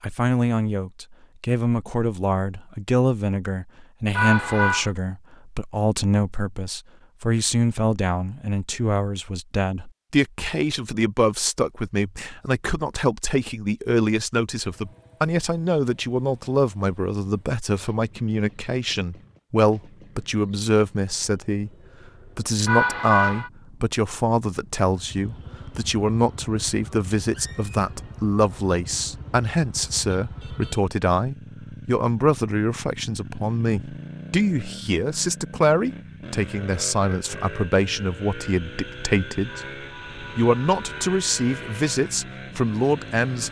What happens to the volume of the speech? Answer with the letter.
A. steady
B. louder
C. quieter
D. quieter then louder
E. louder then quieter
A.